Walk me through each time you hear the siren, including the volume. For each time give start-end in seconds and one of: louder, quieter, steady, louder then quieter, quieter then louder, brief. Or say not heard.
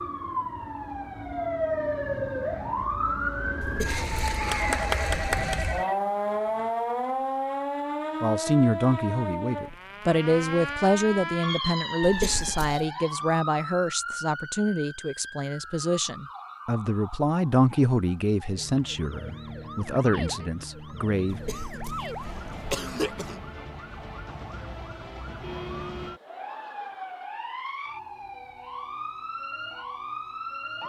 0.0-30.8 quieter.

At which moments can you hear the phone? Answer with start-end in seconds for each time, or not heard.
4.7-6.0.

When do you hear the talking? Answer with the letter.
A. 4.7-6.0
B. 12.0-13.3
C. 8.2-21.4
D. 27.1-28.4
C.